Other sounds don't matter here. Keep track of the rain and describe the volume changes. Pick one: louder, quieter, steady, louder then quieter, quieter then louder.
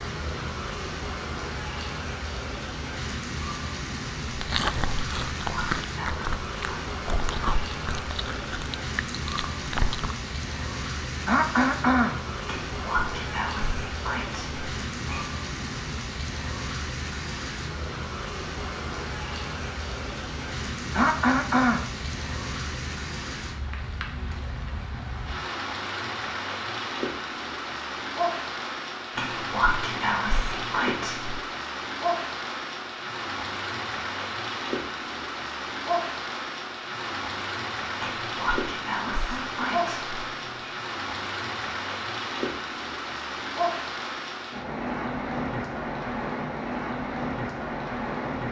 steady.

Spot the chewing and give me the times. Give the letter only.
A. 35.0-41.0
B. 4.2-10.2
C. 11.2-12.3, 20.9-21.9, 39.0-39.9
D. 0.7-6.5
B.